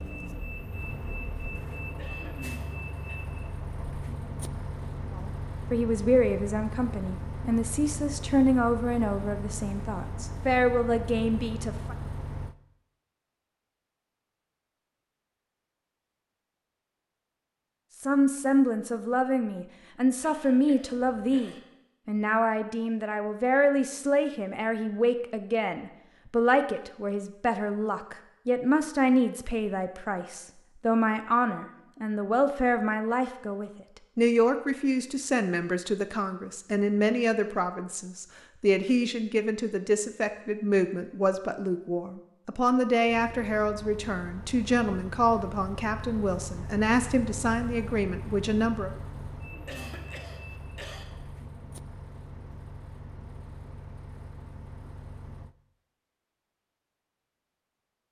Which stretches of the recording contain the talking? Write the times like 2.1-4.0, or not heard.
5.2-11.9, 18.0-48.9.